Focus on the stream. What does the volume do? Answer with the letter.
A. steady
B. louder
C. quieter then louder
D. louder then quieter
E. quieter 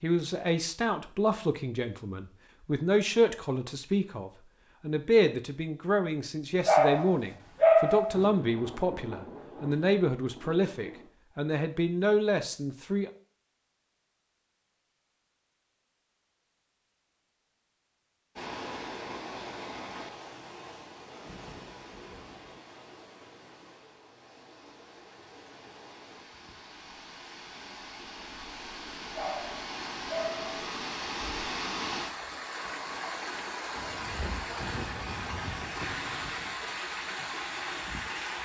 C.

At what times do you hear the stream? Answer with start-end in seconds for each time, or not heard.
18.4-38.4.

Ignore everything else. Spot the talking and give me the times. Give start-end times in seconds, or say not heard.
0.0-13.1.